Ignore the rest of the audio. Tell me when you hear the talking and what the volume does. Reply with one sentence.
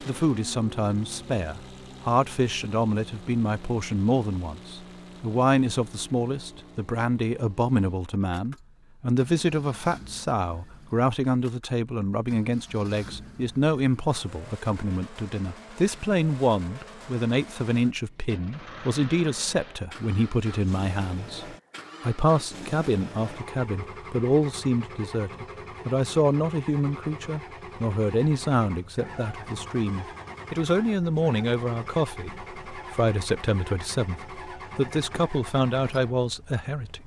You can hear the talking from 0.0 to 37.0 s, at a steady volume.